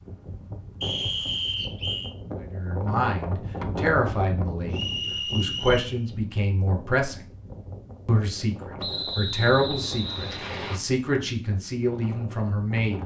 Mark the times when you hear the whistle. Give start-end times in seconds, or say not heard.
0.8-2.1, 4.7-6.0, 8.8-10.8.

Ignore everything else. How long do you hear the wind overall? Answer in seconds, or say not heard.
13 s.